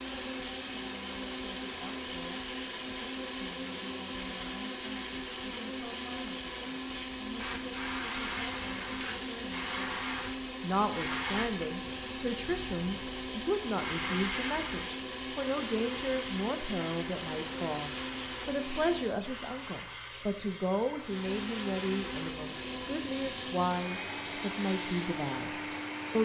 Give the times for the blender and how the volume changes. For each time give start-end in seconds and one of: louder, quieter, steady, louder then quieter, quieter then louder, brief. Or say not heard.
0.0-19.3 steady
21.0-26.2 steady.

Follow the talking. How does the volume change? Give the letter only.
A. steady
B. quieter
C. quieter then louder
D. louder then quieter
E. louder
E.